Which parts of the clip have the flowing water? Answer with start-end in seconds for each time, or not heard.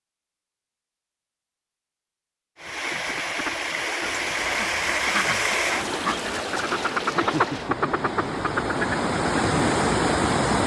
2.5-10.6.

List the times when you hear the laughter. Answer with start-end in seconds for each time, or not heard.
7.1-8.3.